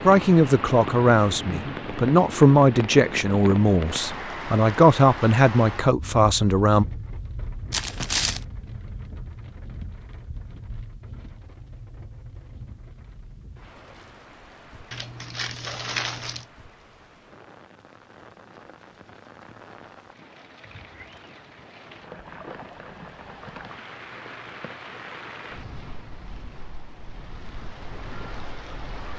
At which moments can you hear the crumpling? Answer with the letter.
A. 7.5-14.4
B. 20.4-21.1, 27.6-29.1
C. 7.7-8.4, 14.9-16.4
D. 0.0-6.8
C.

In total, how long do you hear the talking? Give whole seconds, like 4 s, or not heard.
7 s.